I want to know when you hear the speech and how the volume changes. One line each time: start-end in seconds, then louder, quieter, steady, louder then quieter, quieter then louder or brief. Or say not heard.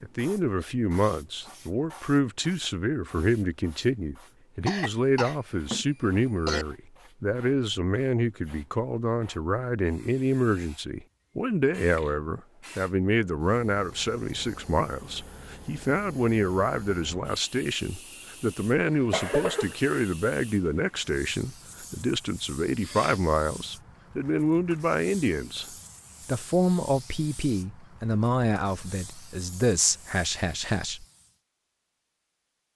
0.0-31.1 steady.